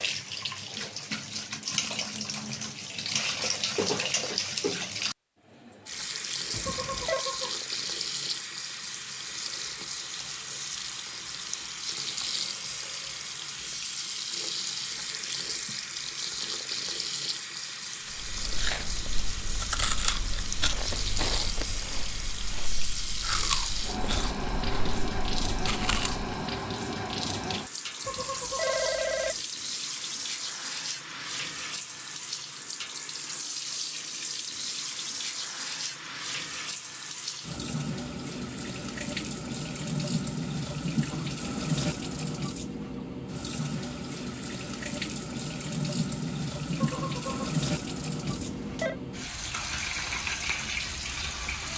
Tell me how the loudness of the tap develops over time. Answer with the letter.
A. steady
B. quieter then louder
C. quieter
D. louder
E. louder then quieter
A.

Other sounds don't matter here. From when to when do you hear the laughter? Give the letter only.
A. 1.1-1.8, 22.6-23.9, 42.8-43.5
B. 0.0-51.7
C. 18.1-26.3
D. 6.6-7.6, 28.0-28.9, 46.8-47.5
D.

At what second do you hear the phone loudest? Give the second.
29 s.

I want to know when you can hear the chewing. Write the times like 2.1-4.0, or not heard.
18.1-26.3.